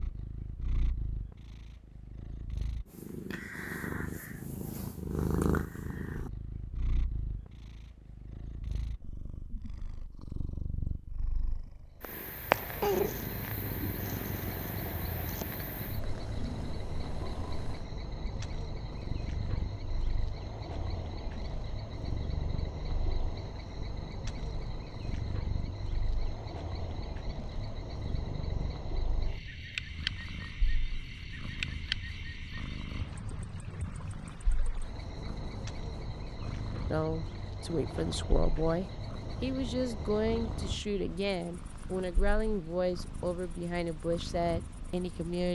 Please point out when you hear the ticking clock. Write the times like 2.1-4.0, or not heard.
not heard.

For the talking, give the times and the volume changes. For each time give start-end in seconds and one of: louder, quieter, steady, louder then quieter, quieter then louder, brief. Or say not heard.
36.9-45.5 steady.